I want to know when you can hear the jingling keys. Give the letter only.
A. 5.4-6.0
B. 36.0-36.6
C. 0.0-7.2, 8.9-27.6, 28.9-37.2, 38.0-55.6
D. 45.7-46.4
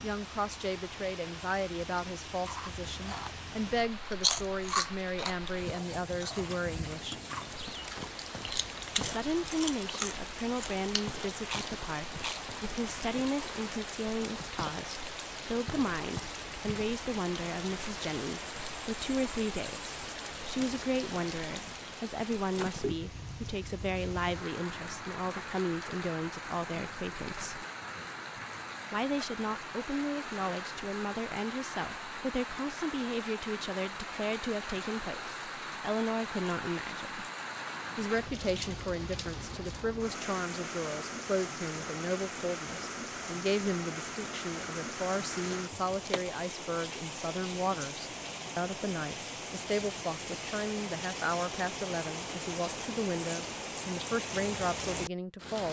D.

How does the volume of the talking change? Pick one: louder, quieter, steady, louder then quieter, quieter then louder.
steady.